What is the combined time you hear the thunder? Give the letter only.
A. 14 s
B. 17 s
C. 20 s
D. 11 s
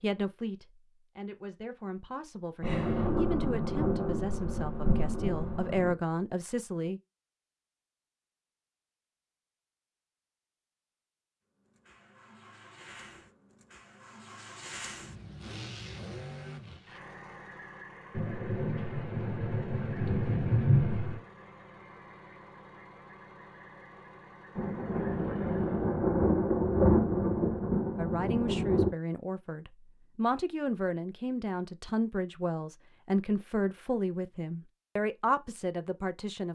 D.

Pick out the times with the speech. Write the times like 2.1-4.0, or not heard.
0.0-7.0, 27.9-36.5.